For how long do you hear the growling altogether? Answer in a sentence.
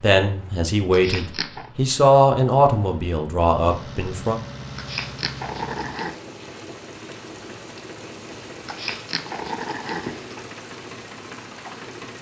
You can hear the growling for 4 seconds altogether.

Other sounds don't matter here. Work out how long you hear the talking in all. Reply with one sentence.
You can hear the talking for 4 seconds altogether.